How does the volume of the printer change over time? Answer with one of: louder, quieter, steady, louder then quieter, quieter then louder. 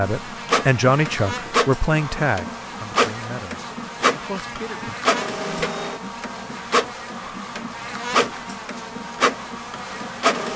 steady.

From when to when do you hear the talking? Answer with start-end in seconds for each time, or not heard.
0.0-5.0.